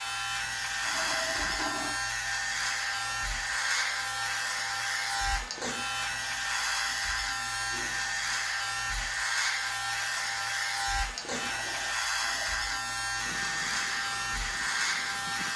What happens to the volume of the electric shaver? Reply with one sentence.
The volume of the electric shaver stays about the same.